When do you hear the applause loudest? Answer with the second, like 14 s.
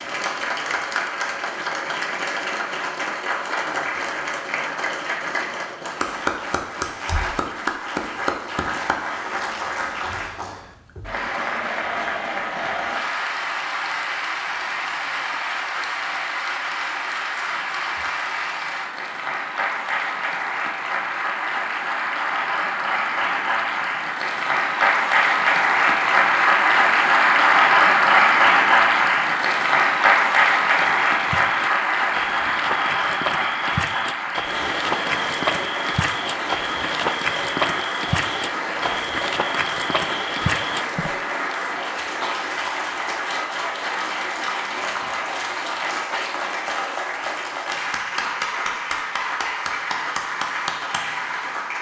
28 s.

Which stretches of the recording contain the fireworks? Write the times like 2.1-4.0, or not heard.
not heard.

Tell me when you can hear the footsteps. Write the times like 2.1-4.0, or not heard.
30.8-41.1.